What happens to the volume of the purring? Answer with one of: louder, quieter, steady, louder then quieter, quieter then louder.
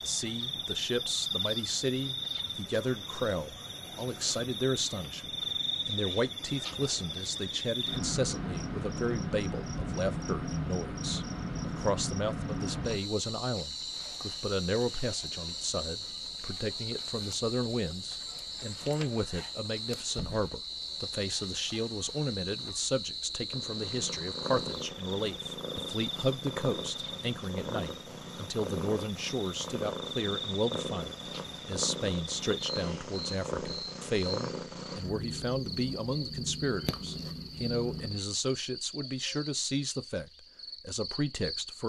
steady.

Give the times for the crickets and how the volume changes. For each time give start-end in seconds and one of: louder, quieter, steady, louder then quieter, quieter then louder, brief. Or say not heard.
0.0-41.8 quieter.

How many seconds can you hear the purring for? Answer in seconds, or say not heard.
15 s.